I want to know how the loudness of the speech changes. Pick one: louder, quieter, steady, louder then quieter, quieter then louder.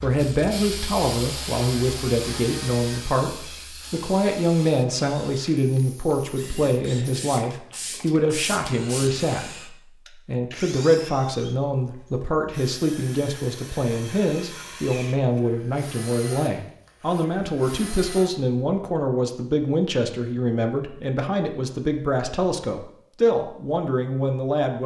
steady.